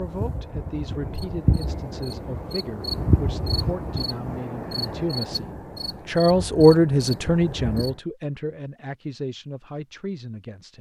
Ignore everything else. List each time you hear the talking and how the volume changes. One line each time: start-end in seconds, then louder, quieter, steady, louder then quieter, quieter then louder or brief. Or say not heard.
0.0-10.7 louder then quieter.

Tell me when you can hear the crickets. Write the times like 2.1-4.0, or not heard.
0.0-8.0.